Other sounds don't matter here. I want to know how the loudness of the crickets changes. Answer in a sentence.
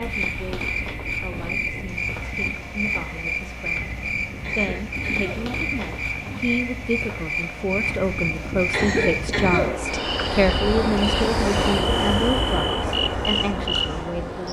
The loudness of the crickets stays about the same.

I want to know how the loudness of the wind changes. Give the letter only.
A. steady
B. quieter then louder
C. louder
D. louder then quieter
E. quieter
C.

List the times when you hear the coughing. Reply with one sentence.
You can hear the coughing from 4.4 to 5.5 s and from 8.7 to 9.8 s.